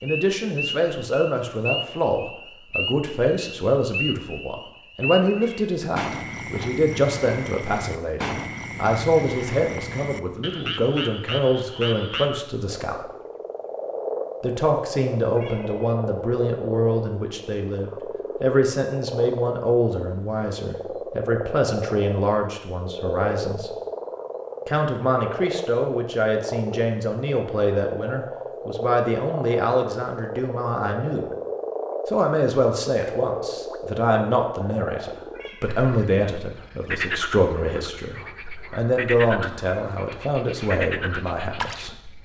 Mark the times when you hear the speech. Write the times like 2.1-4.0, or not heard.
0.0-13.1, 14.4-23.8, 24.6-31.3, 32.0-42.0.